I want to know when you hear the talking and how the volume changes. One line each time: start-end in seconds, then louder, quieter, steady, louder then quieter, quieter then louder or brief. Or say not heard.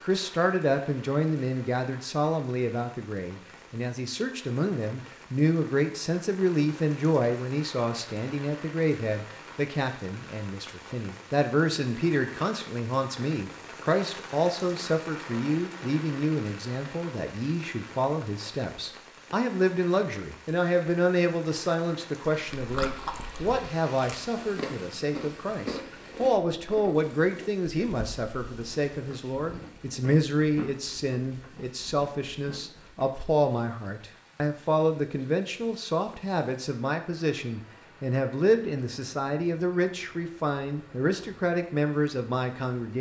0.0-42.9 steady.